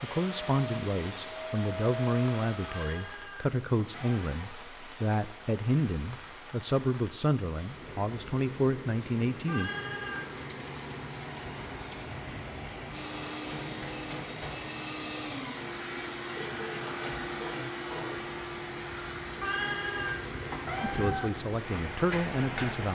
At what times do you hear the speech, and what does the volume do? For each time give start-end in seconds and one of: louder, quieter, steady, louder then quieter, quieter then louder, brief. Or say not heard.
0.0-9.7 steady
20.8-22.9 brief.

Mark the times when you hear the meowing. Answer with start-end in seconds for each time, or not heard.
2.6-4.2, 9.4-10.4, 19.4-21.3.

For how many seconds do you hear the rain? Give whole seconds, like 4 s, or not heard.
23 s.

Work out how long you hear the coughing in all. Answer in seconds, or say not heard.
2 s.